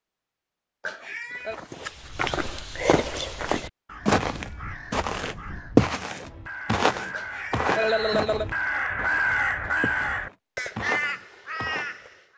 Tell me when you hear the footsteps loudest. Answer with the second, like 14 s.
6 s.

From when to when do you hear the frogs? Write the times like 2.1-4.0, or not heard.
not heard.